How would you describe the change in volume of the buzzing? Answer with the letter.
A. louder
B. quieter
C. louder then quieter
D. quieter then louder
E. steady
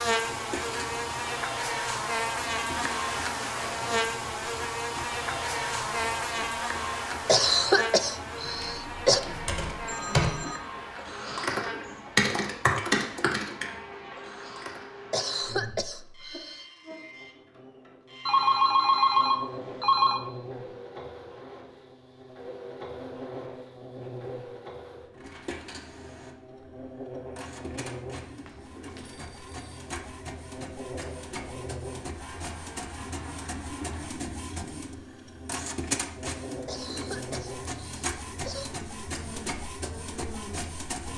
B.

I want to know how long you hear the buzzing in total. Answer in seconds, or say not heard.
41 s.